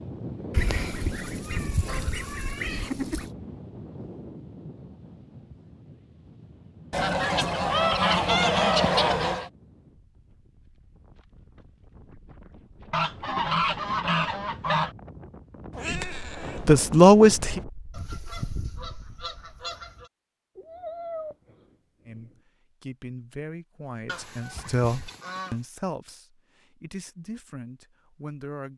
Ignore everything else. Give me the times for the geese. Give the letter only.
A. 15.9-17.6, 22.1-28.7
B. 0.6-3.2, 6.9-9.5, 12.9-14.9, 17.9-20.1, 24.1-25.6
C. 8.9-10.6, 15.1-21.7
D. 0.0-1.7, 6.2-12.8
B.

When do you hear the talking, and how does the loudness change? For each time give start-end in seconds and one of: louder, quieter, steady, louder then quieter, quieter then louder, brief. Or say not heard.
15.9-17.6 brief
22.1-28.7 louder then quieter.